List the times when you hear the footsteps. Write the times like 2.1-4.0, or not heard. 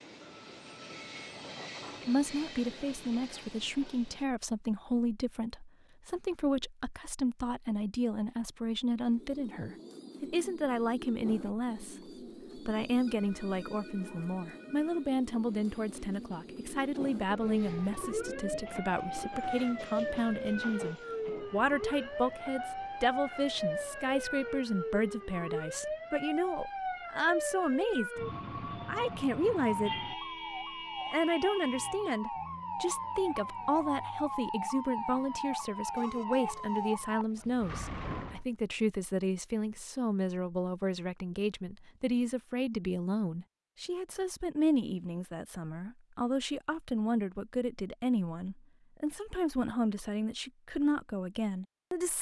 not heard.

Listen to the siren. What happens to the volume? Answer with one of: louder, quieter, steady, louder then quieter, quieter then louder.
steady.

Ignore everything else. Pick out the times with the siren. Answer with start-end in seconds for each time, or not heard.
17.4-38.5.